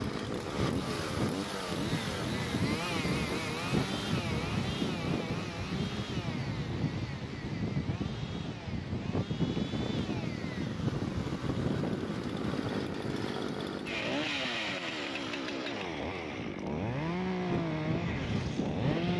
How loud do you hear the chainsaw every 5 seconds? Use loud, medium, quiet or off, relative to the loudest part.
loud, medium, loud, loud.